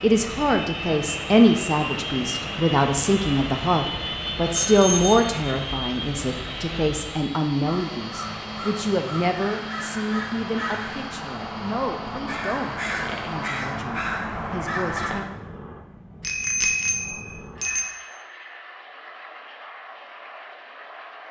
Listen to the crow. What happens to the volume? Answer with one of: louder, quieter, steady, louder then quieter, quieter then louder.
louder.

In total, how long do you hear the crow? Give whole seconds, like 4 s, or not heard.
8 s.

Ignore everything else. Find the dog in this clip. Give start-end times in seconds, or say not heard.
not heard.